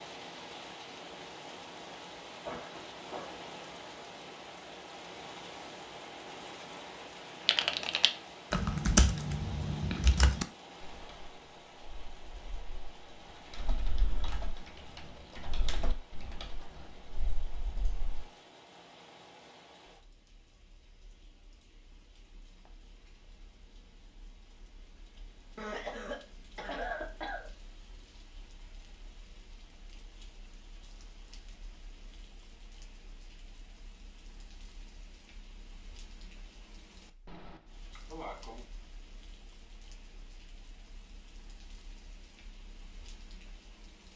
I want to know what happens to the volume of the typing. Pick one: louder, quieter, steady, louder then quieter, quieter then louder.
quieter.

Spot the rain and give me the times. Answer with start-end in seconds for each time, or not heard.
0.0-44.1.